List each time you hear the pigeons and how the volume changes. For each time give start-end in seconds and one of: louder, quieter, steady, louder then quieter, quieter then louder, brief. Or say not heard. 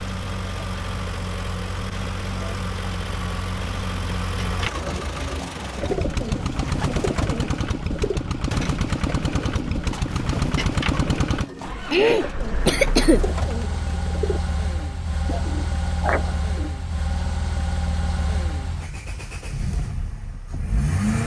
4.4-16.7 steady.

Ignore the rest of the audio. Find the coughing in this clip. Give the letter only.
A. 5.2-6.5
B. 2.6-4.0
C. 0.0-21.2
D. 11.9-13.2
D.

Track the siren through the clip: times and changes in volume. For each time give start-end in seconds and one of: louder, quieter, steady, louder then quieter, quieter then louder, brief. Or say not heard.
not heard.